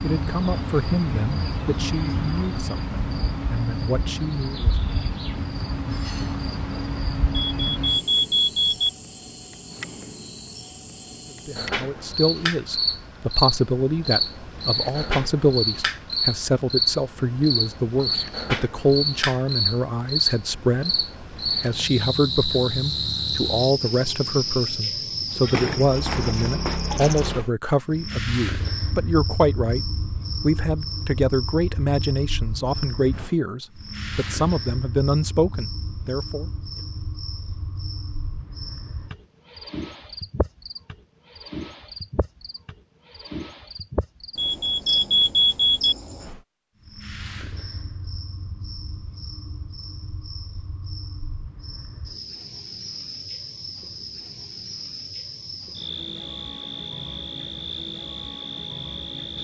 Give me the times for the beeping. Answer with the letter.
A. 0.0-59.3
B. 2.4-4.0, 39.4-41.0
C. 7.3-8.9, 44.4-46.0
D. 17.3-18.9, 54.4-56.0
C.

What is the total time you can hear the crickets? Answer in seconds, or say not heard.
59 s.